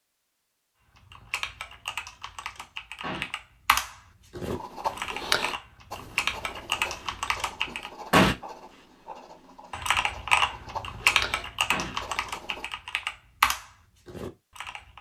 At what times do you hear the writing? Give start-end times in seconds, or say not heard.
4.5-12.7.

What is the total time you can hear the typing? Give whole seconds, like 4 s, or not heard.
12 s.